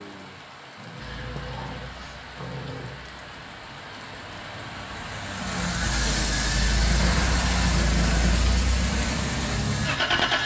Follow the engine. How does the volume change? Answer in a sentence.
The loudness of the engine goes up.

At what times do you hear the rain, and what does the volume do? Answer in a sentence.
You can hear the rain from 0.0 to 10.4 s, getting louder.